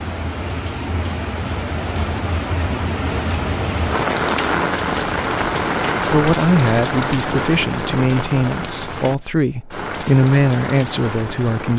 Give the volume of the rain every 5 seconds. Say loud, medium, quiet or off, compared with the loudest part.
loud, loud, medium.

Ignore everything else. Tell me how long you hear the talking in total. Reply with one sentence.
The talking can be heard for 6 seconds in total.